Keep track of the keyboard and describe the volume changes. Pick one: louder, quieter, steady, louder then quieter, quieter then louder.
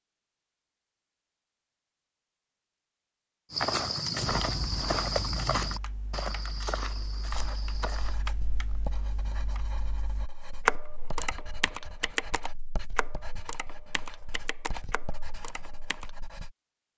louder then quieter.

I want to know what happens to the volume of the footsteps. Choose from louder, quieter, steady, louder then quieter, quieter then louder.
quieter.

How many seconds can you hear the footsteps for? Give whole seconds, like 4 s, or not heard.
5 s.